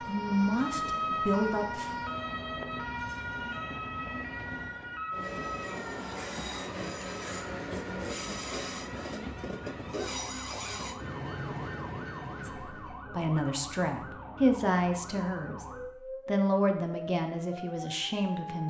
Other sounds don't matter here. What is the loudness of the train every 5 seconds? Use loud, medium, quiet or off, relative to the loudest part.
medium, loud, loud, off.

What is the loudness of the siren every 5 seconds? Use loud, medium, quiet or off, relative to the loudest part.
loud, medium, medium, medium.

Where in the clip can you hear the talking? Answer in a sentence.
The talking can be heard from 0.1 to 1.9 s, from 12.4 to 15.7 s and from 16.2 to 18.6 s.